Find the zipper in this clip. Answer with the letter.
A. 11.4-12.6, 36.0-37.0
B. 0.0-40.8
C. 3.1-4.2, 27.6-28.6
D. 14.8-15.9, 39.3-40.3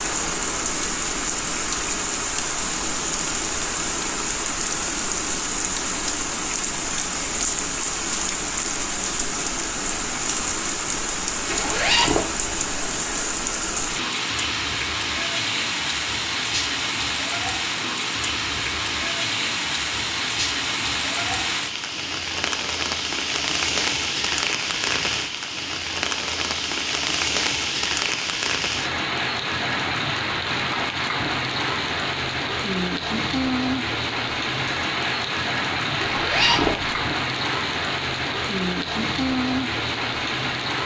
A.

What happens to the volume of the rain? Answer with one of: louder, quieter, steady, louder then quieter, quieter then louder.
steady.